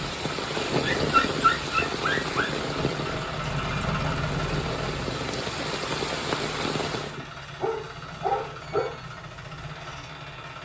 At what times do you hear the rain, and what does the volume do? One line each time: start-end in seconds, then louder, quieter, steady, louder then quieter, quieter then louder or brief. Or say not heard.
0.0-7.2 quieter then louder.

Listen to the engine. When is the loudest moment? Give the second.
4 s.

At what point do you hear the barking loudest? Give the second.
1 s.